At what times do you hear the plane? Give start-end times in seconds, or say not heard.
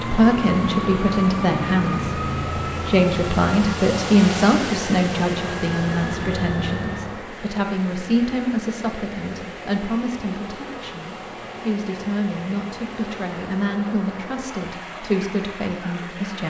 0.0-7.2.